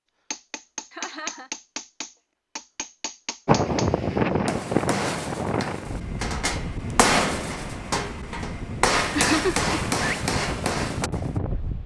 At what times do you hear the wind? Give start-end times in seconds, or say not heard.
3.5-11.8.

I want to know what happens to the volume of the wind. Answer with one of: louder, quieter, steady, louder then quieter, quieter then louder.
quieter then louder.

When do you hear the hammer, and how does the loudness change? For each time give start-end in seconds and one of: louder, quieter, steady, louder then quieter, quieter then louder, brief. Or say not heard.
0.3-11.4 louder.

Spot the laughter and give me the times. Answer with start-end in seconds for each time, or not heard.
0.9-1.5, 9.2-9.7.